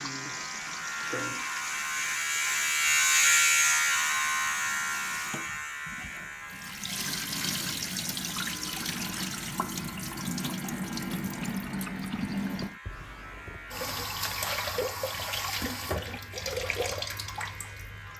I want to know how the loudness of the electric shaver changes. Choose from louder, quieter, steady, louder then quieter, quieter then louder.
quieter.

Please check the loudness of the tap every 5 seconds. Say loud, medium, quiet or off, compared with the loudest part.
medium, loud, loud, loud.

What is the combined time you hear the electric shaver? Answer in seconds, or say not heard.
18 s.